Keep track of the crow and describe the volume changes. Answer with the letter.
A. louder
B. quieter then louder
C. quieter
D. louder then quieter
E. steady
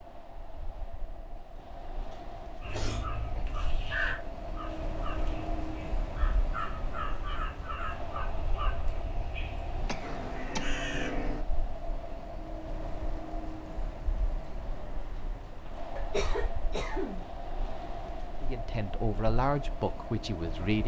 B.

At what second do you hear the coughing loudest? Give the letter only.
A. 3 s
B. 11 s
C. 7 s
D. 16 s
D.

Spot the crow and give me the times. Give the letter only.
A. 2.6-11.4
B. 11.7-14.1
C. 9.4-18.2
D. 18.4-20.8
A.